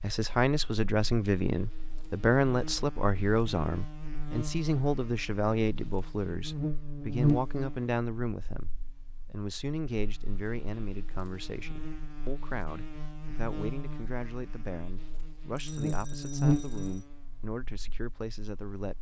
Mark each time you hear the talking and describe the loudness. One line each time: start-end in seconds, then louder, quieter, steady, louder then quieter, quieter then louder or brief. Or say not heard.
0.0-18.9 quieter.